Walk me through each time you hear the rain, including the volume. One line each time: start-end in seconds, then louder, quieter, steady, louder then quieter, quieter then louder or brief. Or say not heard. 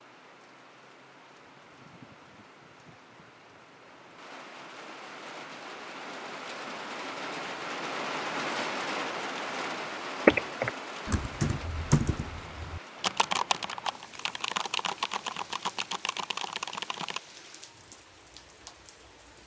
0.0-19.4 louder then quieter.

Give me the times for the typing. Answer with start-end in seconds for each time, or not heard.
10.2-17.2.